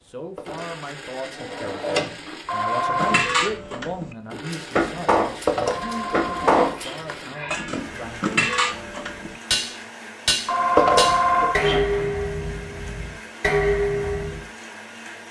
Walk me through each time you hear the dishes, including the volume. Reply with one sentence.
You can hear the dishes from 3.0 to 14.4 s, at a steady volume.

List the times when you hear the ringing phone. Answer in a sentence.
The ringing phone can be heard from 2.5 to 3.2 s, from 5.7 to 7.7 s and from 10.4 to 12.1 s.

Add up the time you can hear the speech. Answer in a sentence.
You can hear the speech for 8 seconds altogether.